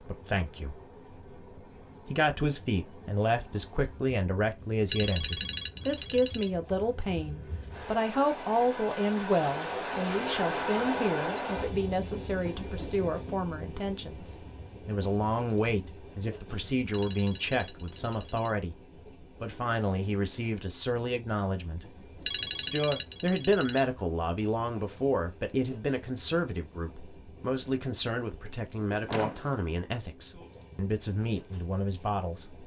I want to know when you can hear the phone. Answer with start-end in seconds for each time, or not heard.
4.9-6.5, 16.9-18.6, 22.2-23.9.